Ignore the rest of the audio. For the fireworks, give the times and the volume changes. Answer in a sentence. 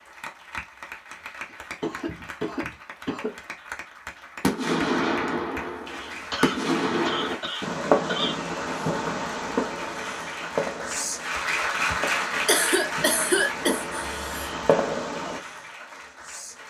You can hear the fireworks from 4.4 to 15.4 s, getting quieter then louder.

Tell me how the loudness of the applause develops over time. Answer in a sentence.
The volume of the applause goes up, then down.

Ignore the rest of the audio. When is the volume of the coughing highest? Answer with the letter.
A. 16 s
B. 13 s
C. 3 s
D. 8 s
B.